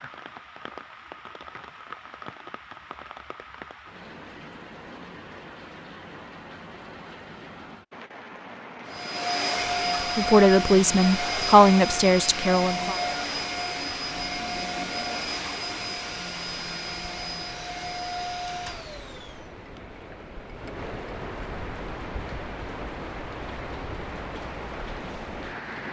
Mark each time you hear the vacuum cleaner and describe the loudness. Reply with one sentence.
The vacuum cleaner can be heard from 8.8 to 19.4 s, getting quieter.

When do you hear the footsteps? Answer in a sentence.
You can't hear the footsteps here.